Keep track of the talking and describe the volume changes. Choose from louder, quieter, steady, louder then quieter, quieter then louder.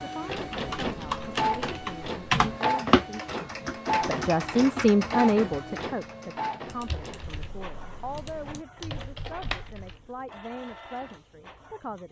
louder then quieter.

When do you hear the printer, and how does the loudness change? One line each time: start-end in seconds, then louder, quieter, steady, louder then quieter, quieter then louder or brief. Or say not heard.
0.0-12.0 quieter.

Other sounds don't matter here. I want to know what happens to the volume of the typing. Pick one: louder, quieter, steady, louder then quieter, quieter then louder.
quieter then louder.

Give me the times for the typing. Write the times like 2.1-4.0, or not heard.
0.3-10.2.